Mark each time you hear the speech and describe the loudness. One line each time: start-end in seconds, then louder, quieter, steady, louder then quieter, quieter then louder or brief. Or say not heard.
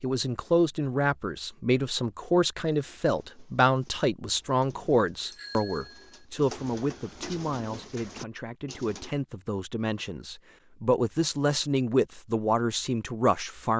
0.0-13.7 quieter then louder.